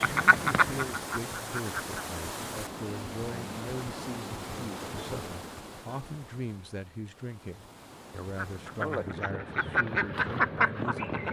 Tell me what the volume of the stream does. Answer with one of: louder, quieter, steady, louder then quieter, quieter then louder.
quieter.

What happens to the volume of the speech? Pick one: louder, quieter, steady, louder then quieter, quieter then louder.
steady.